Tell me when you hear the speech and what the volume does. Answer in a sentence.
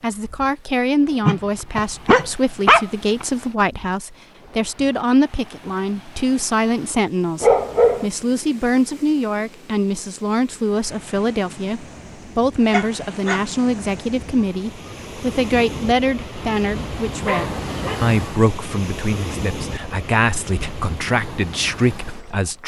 You can hear the speech from 0.0 to 22.6 s, at a steady volume.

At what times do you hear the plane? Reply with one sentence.
You can't hear the plane here.